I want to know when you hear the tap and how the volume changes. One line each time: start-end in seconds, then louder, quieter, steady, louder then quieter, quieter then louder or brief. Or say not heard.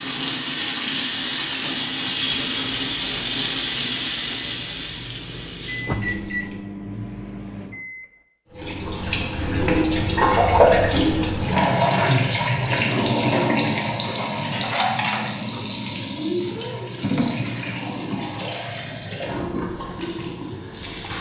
0.0-6.6 quieter
8.6-21.1 quieter.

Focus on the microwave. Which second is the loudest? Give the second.
6 s.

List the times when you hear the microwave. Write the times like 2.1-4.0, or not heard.
2.5-8.2.